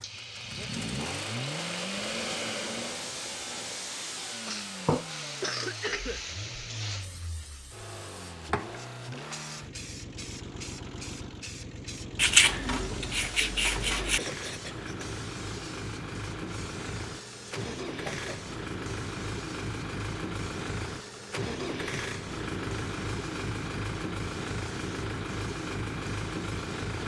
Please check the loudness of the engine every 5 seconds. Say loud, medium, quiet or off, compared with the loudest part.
loud, medium, medium, loud, loud, loud.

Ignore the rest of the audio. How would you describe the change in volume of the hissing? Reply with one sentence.
The volume of the hissing goes down.